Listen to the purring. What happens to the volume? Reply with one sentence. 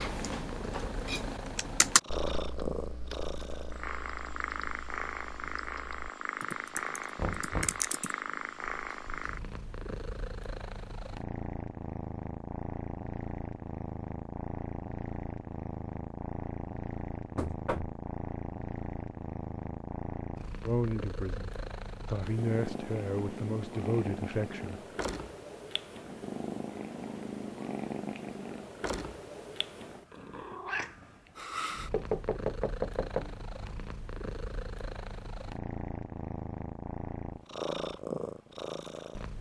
The loudness of the purring stays about the same.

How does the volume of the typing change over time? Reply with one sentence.
The loudness of the typing goes down, then up.